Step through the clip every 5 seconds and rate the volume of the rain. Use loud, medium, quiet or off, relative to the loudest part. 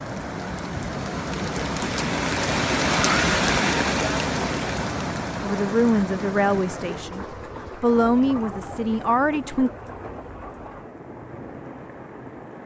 loud, medium, quiet.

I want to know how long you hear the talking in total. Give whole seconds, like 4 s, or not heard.
4 s.